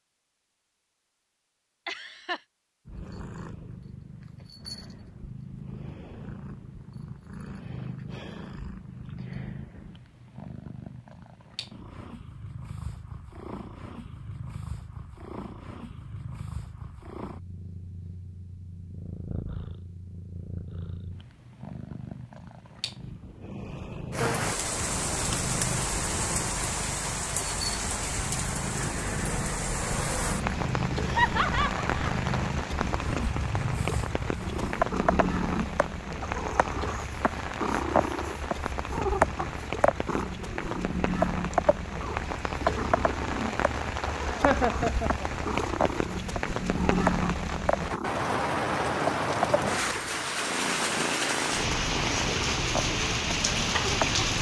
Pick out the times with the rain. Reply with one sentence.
You can hear the rain from 24.1 to 54.3 s.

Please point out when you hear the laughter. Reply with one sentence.
The laughter can be heard from 1.9 to 2.4 s, from 31.1 to 32.1 s and from 44.2 to 45.2 s.